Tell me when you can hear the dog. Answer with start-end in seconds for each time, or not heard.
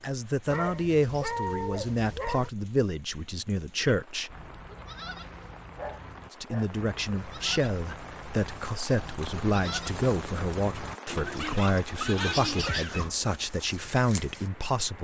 0.5-2.5, 5.2-6.8, 11.2-13.2.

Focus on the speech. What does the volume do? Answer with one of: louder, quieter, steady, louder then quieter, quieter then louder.
steady.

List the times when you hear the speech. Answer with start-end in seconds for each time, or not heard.
0.0-4.3, 6.3-14.9.